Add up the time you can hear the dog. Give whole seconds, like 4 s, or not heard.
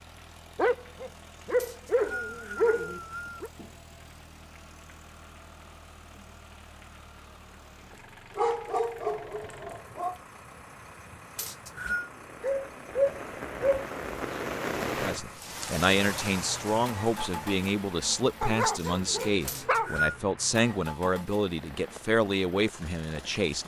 8 s.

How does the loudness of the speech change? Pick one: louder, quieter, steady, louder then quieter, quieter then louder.
steady.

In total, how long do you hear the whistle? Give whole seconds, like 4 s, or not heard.
3 s.